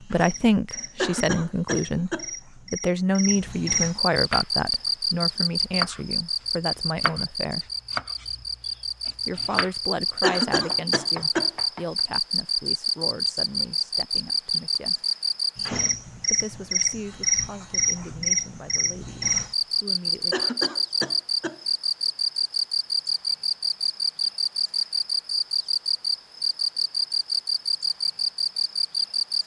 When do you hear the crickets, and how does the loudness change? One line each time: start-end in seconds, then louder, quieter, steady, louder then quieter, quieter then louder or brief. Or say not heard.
0.0-29.4 steady.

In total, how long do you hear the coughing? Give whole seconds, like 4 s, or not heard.
4 s.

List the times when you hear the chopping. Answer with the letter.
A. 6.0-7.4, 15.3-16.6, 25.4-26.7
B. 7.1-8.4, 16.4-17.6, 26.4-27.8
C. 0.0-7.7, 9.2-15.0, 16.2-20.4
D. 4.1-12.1
D.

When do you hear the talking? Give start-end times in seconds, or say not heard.
0.0-7.7, 9.2-15.0, 16.2-20.4.